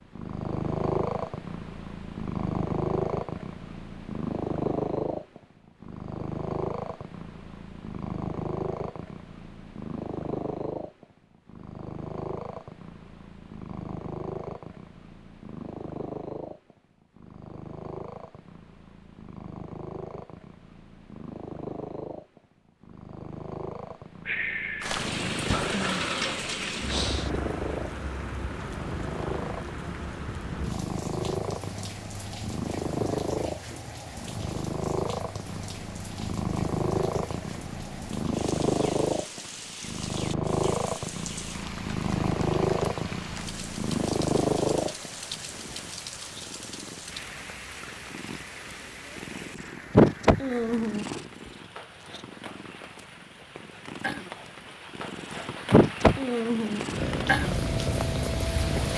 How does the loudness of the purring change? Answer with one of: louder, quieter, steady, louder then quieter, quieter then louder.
quieter then louder.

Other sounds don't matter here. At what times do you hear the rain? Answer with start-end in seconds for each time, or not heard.
24.8-58.9.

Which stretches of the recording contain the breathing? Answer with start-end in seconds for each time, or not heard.
24.2-27.4.